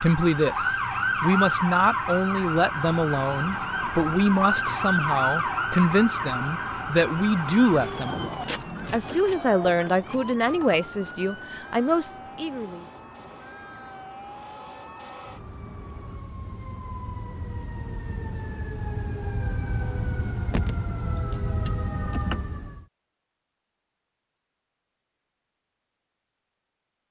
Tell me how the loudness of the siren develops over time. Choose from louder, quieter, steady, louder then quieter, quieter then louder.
quieter then louder.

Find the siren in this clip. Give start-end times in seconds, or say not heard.
0.0-22.9.